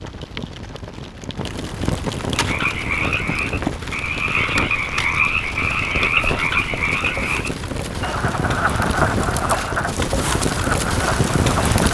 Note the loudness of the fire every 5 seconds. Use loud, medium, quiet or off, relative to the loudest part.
medium, medium, loud.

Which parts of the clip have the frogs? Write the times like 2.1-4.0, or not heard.
2.3-11.8.